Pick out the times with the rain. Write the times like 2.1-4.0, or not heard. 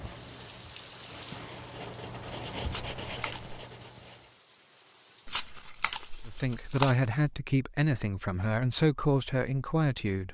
0.0-7.2.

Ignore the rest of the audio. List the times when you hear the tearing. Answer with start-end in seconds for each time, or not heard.
2.6-3.5, 5.2-7.0.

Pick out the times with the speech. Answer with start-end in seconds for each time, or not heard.
6.2-10.2.